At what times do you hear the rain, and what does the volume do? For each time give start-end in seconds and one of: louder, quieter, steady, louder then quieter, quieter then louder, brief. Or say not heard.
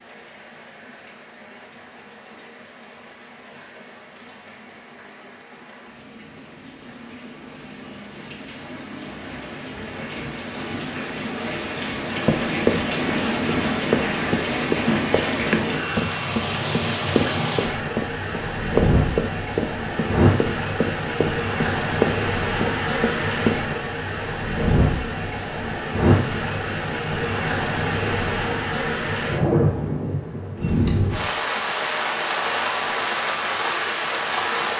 0.0-34.7 louder.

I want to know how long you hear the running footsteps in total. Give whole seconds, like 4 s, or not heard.
11 s.